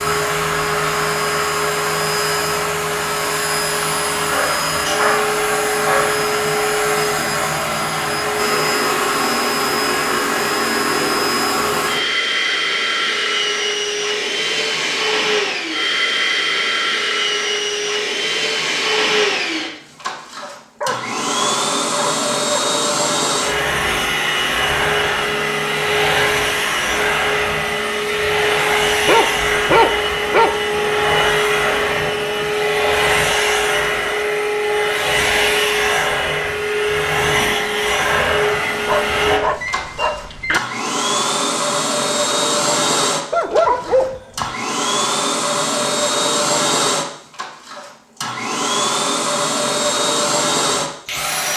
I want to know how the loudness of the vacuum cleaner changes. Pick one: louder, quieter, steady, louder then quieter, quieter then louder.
steady.